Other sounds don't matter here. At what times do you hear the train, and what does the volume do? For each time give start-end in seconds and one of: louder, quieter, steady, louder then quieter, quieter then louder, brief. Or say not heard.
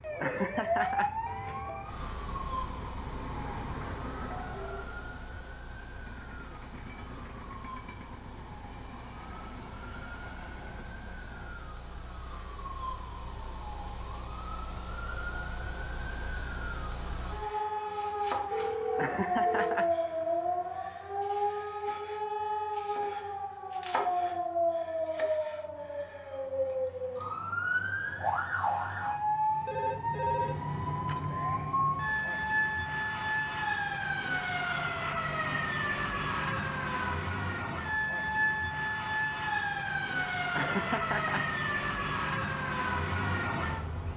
0.0-11.7 louder then quieter.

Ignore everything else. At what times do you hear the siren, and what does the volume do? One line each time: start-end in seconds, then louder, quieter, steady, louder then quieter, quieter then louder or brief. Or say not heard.
0.0-44.1 louder.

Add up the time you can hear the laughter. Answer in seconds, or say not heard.
3 s.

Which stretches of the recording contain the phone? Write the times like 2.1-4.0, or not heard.
1.2-1.9, 18.5-19.8, 29.6-31.2.